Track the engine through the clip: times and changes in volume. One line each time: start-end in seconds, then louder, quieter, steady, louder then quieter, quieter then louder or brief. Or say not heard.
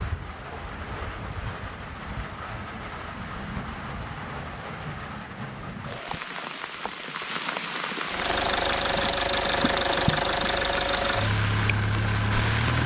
8.1-12.8 steady.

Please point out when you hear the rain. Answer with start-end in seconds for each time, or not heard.
0.0-12.8.